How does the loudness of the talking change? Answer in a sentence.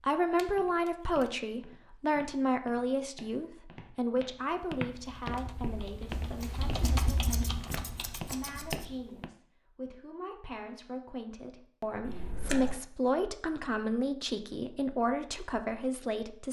The volume of the talking goes down, then up.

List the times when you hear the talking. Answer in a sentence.
The talking can be heard from 0.0 to 16.4 s.